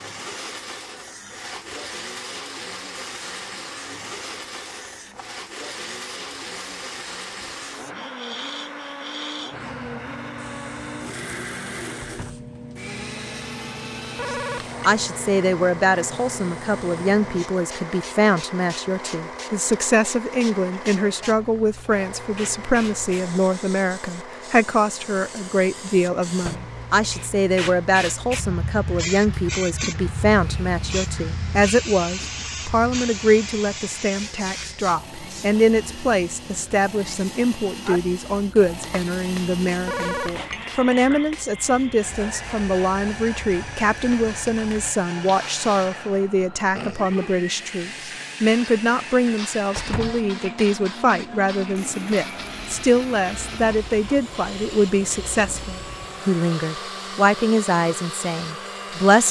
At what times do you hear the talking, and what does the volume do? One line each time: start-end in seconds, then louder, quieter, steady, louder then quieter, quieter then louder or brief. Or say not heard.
14.3-59.2 steady.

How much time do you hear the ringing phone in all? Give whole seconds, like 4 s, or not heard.
2 s.